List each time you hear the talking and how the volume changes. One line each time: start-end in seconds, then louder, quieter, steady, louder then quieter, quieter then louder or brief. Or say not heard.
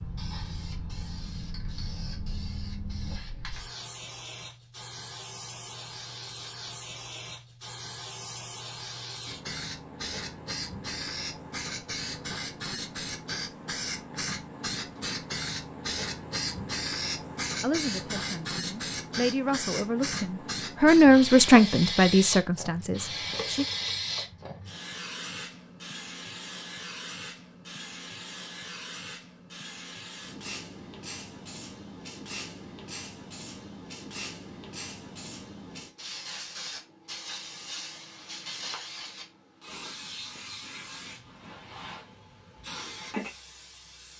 17.6-23.6 louder then quieter.